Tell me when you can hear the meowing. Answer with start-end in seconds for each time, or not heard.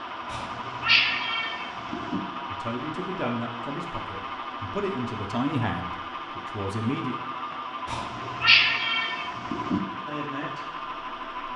0.3-2.2, 7.8-9.8.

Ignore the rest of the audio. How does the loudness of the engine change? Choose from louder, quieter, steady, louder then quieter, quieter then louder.
steady.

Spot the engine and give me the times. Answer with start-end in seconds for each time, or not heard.
0.0-11.5.